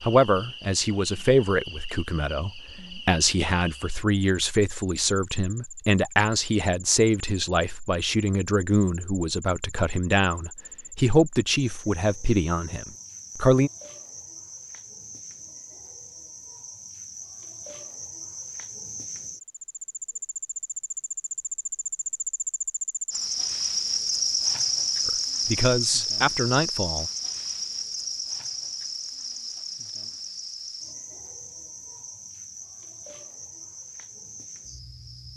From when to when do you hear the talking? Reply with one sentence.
The talking can be heard from 0.0 to 13.7 s and from 25.1 to 27.1 s.